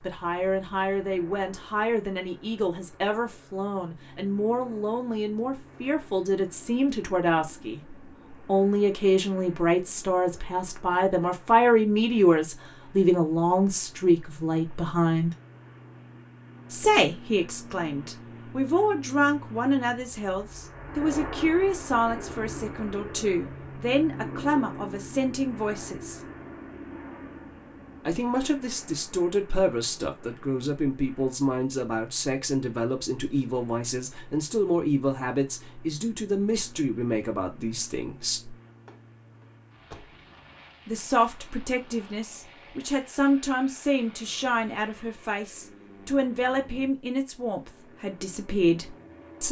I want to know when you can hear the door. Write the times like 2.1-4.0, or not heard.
38.9-40.2.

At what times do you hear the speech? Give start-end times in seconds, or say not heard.
0.0-15.3, 16.7-26.2, 28.1-38.5, 40.9-49.4.